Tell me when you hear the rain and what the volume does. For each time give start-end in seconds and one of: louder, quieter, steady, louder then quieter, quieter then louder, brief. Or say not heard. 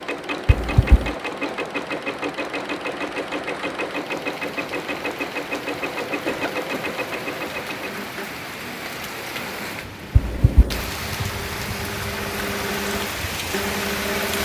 0.0-14.4 louder.